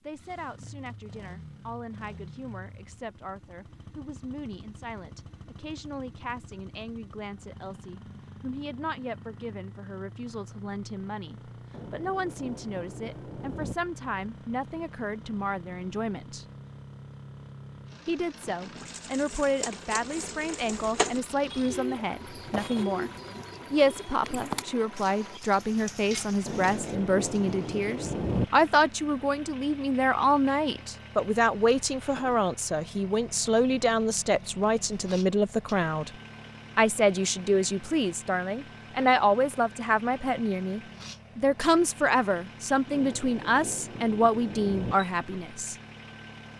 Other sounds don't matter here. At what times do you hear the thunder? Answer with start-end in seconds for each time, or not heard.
11.7-13.8, 26.4-28.4, 42.9-45.0.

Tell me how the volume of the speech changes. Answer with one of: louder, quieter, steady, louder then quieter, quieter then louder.
louder.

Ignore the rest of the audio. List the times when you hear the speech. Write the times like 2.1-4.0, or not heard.
0.0-16.4, 18.1-23.1, 23.7-36.1, 36.8-45.8.